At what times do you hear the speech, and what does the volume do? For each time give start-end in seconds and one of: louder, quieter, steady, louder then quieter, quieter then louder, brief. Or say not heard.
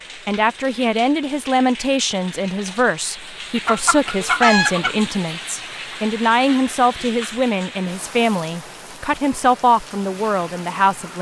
0.2-11.1 steady.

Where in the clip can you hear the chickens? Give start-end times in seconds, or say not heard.
3.6-5.1.